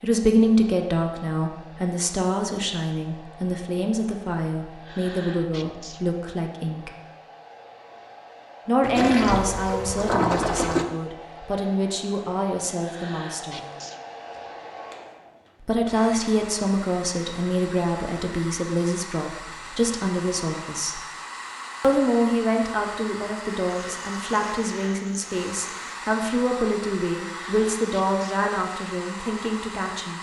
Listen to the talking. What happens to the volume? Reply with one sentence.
The volume of the talking stays about the same.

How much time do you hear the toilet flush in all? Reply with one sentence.
The toilet flush can be heard for 4 seconds in total.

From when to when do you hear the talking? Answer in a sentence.
The talking can be heard from 0.0 to 6.9 s, from 8.7 to 13.7 s, from 15.7 to 21.0 s and from 21.8 to 30.1 s.